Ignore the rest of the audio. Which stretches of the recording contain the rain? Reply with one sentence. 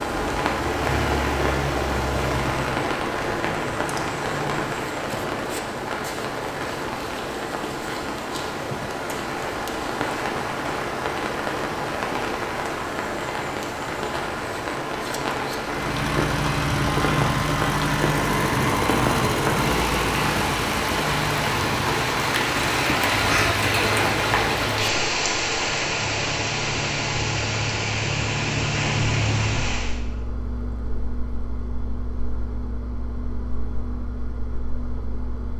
The rain can be heard from 0.0 to 30.0 s.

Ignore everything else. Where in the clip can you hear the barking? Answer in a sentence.
The barking can't be heard in this clip.